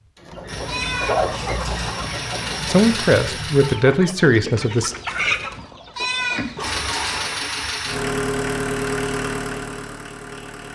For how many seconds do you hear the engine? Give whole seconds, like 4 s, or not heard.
8 s.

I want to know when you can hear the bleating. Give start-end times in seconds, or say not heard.
0.7-2.1, 6.0-7.8.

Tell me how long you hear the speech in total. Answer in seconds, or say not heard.
2 s.